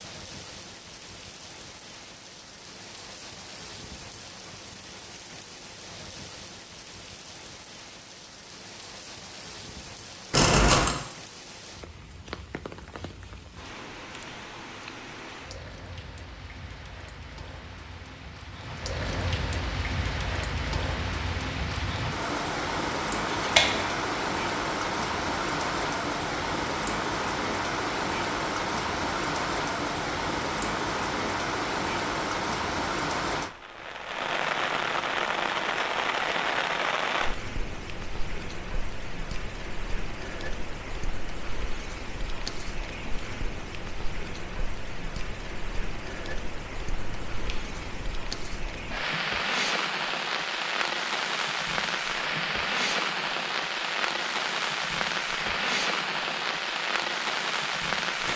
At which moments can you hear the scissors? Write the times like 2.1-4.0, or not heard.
10.3-10.9, 23.4-23.9, 47.0-48.0.